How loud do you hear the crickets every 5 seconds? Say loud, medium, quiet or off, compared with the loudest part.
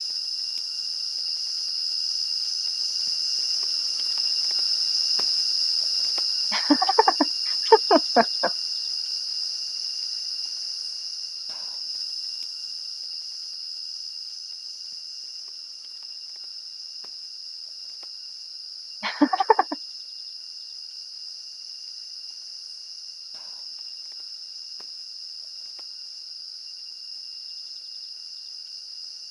loud, loud, medium, quiet, quiet, quiet.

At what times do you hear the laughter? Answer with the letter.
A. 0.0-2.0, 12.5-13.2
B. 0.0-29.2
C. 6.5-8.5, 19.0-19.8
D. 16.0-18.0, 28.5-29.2
C.